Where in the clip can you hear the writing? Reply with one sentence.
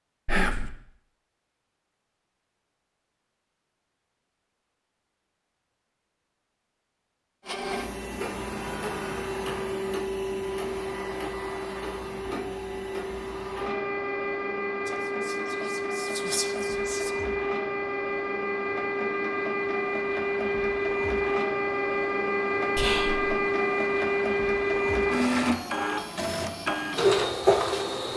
The writing can't be heard in this clip.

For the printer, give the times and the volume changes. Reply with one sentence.
The printer can be heard from 7.5 to 28.1 s, getting louder.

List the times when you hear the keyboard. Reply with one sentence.
You can't hear the keyboard here.